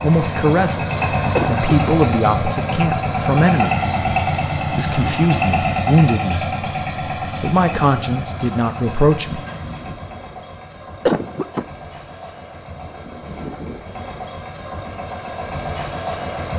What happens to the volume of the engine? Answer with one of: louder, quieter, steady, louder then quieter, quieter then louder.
quieter then louder.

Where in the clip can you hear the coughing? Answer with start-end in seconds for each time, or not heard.
1.4-1.9, 11.1-11.7.